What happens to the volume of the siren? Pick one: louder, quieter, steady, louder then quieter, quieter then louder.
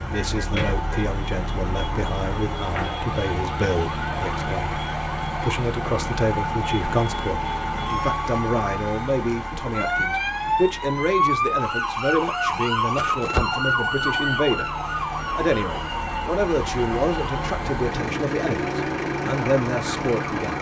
louder then quieter.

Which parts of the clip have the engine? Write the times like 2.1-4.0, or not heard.
0.0-20.5.